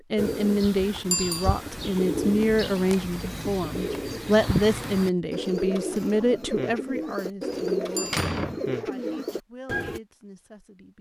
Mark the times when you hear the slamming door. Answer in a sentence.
You can hear the slamming door from 7.5 to 9.2 s.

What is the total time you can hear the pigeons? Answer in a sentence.
You can hear the pigeons for 10 seconds altogether.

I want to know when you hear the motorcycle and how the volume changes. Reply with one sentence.
The motorcycle can't be heard in this clip.